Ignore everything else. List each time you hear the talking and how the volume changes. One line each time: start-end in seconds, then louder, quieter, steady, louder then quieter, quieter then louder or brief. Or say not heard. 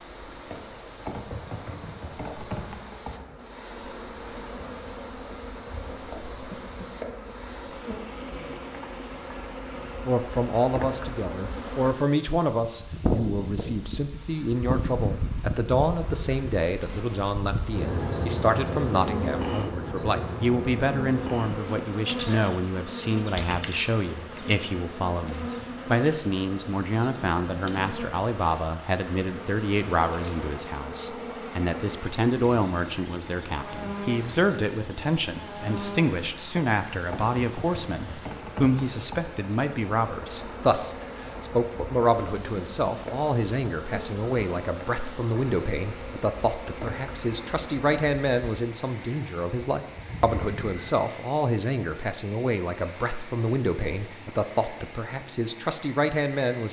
10.1-56.6 steady.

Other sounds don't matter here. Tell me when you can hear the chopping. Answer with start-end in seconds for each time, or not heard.
not heard.